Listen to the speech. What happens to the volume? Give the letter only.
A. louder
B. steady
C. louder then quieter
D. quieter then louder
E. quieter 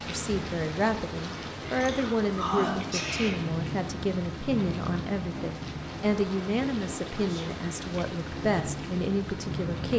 B.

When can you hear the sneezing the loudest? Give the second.
3 s.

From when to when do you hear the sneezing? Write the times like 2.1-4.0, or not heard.
1.7-3.4, 7.1-7.5.